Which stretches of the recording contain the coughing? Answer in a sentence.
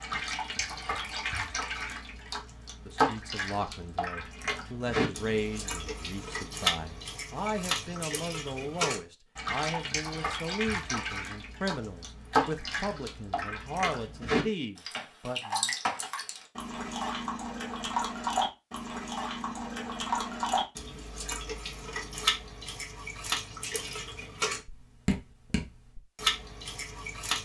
The coughing can't be heard in this clip.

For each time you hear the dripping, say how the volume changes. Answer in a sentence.
You can hear the dripping from 0.0 to 27.4 s, at a steady volume.